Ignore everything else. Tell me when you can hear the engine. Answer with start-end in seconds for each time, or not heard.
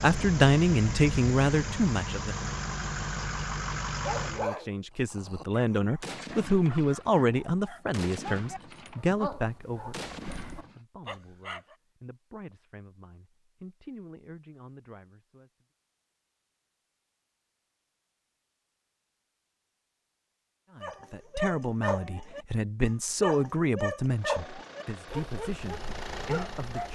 0.0-4.5, 24.1-26.8.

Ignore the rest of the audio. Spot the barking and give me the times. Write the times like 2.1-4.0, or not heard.
4.0-11.8, 20.8-26.8.